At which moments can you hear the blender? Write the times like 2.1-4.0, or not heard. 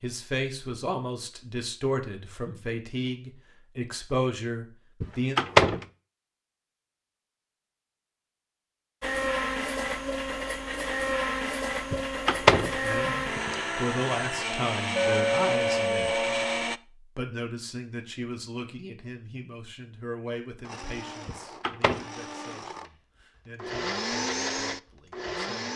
9.0-16.8, 20.6-25.7.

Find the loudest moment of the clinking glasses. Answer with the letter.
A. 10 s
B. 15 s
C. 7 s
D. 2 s
B.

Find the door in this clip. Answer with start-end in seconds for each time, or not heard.
5.0-5.8, 11.9-13.6, 21.2-22.1.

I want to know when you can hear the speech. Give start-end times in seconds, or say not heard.
0.0-5.4, 12.6-16.2, 17.1-25.7.